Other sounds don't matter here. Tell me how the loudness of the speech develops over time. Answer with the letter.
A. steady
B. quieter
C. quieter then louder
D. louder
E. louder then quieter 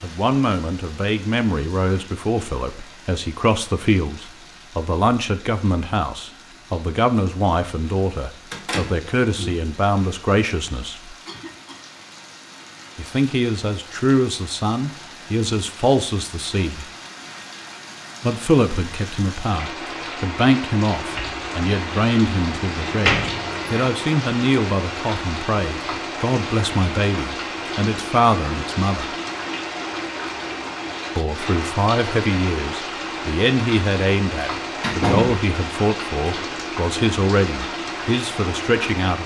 A.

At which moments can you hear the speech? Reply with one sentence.
You can hear the speech from 0.0 to 11.2 s, from 12.9 to 16.9 s, from 18.2 to 29.1 s and from 31.1 to 39.2 s.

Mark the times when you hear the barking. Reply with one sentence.
You can't hear the barking here.